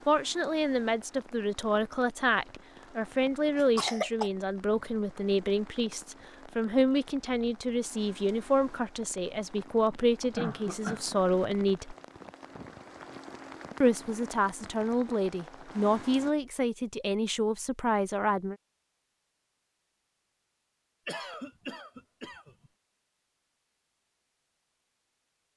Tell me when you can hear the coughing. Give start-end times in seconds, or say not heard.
3.5-4.3, 9.9-11.1, 21.1-22.7.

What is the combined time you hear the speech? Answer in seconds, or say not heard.
17 s.